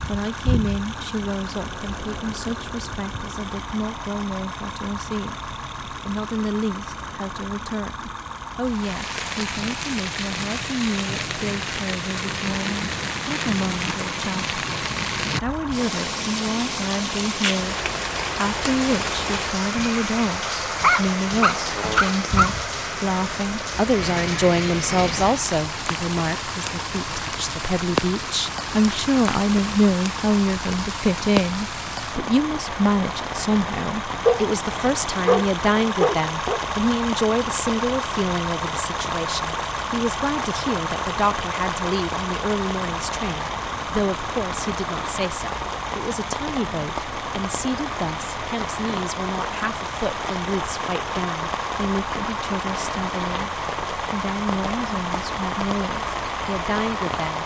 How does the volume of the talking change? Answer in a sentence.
The volume of the talking goes up, then down.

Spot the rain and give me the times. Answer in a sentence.
The rain can be heard from 8.7 to 57.4 s.